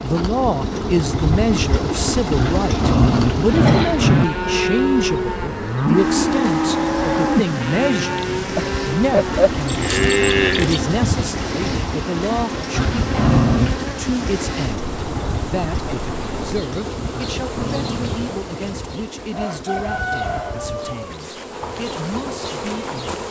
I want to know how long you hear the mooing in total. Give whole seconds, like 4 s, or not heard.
7 s.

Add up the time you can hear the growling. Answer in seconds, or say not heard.
4 s.